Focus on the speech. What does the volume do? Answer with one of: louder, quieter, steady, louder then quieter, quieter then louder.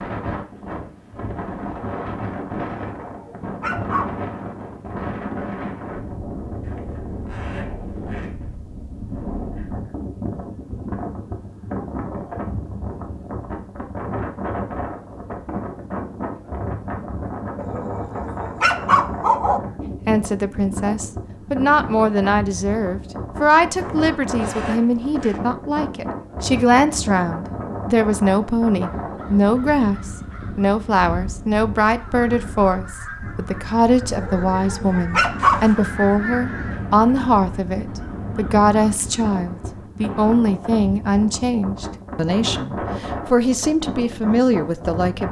steady.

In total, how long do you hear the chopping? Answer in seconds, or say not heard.
not heard.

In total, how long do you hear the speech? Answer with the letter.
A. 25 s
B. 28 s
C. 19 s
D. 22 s
A.